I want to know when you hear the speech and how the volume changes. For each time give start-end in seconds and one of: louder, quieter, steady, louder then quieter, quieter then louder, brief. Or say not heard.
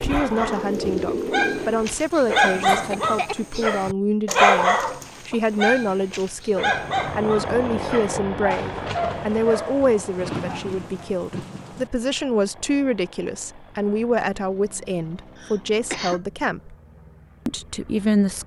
0.0-16.8 steady
17.4-18.4 brief.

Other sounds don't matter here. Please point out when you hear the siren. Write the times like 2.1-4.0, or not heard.
not heard.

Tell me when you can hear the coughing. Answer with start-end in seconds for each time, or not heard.
2.9-3.5, 15.3-16.2.